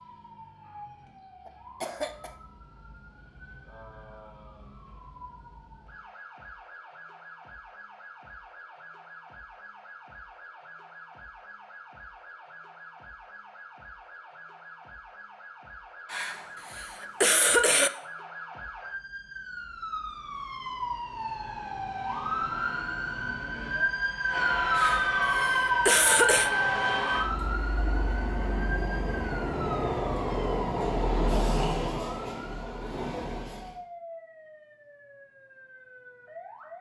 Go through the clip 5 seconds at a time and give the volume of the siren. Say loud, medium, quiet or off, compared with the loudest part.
quiet, quiet, quiet, medium, loud, loud, quiet, quiet.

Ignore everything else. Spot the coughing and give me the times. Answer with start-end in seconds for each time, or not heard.
1.4-2.4, 16.1-17.9, 24.8-26.5.